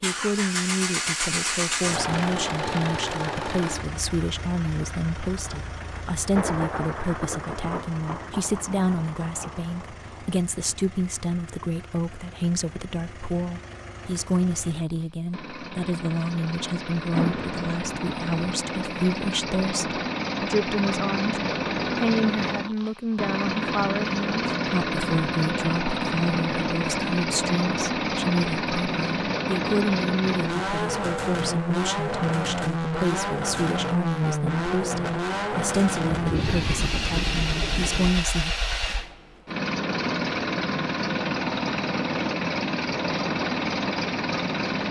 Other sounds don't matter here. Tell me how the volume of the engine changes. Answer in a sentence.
The loudness of the engine goes down, then up.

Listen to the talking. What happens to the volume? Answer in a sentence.
The loudness of the talking stays about the same.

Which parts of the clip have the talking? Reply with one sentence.
The talking can be heard from 0.0 to 38.5 s.